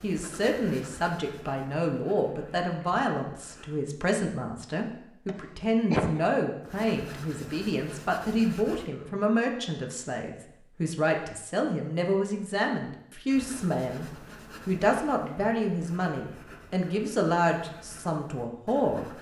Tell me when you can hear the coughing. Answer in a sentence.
The coughing can be heard from 5.2 to 6.2 s.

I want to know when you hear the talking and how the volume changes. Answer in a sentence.
You can hear the talking from 0.0 to 19.1 s, at a steady volume.